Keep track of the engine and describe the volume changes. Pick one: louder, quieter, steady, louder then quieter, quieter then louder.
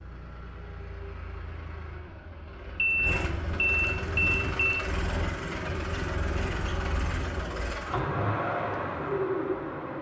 louder.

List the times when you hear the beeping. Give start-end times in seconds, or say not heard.
2.8-4.8.